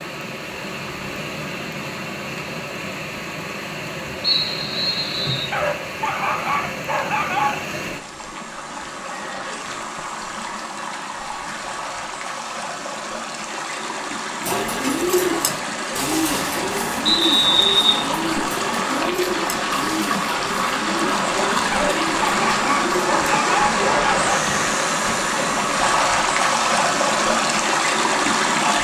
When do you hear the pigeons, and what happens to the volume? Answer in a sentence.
You can hear the pigeons from 14.4 to 24.1 s, getting quieter.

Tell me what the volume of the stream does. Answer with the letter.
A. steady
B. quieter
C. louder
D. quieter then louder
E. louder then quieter
C.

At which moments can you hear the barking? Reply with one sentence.
You can hear the barking from 5.5 to 7.7 s and from 21.7 to 24.4 s.